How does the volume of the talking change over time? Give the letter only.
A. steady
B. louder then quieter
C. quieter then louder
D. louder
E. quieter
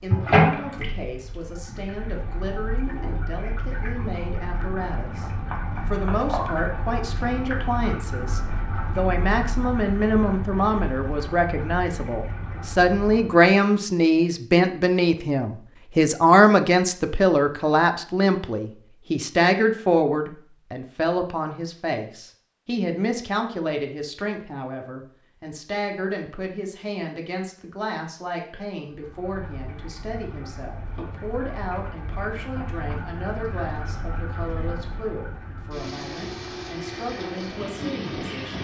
B.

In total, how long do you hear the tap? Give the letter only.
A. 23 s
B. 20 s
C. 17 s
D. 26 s
A.